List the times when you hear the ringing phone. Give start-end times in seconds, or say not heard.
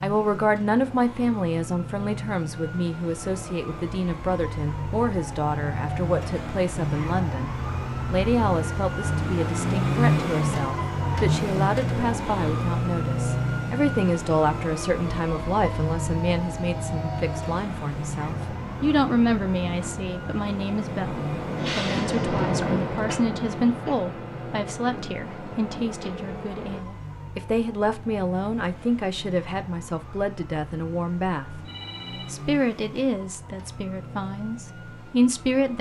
31.6-32.3.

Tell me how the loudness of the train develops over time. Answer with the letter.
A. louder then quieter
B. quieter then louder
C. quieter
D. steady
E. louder
A.